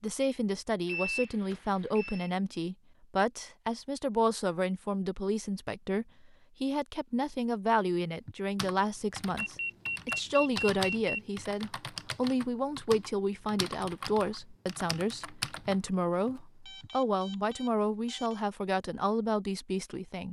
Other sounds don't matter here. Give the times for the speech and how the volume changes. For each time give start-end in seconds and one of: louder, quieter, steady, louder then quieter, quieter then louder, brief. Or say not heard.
0.0-20.2 steady.